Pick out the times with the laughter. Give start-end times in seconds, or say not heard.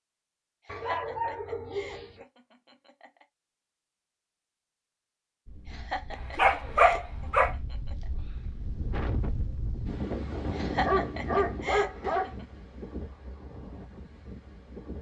0.7-3.2, 5.7-8.1, 10.5-12.4.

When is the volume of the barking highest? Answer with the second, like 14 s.
7 s.